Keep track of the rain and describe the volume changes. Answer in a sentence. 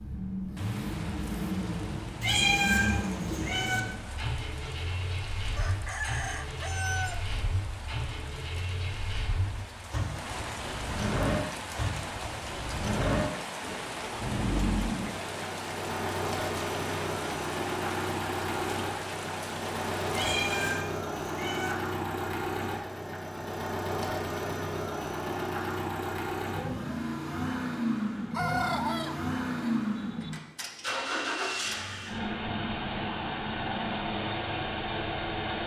The loudness of the rain goes up.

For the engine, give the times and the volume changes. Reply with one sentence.
The engine can be heard from 0.0 to 35.6 s, at a steady volume.